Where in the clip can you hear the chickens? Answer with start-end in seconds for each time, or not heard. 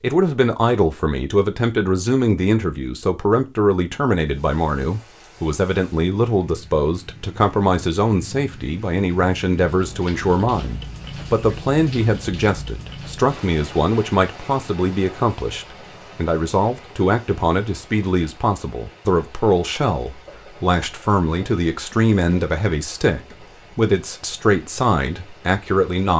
not heard.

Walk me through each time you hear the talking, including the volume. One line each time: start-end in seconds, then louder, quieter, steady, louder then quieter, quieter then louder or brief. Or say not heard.
0.0-26.1 steady.